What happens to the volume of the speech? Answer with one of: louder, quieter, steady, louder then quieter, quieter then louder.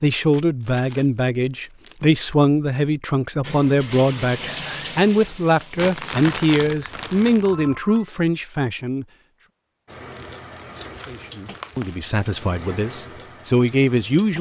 steady.